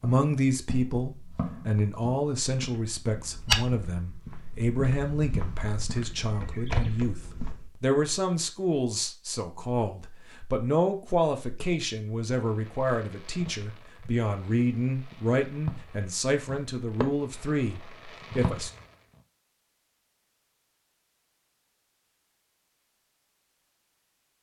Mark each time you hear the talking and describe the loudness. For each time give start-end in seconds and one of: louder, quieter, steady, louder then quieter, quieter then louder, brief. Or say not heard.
0.0-18.7 steady.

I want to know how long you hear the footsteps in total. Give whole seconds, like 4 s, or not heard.
8 s.